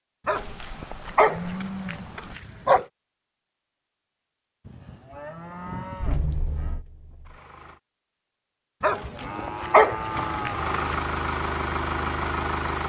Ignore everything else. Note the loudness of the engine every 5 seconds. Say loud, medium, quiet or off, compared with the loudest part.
off, medium, loud.